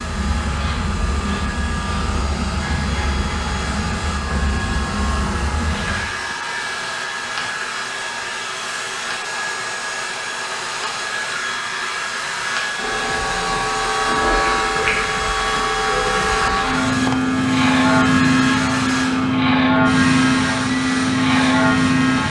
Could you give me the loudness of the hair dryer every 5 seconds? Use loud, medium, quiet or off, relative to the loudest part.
medium, loud, loud, loud, loud.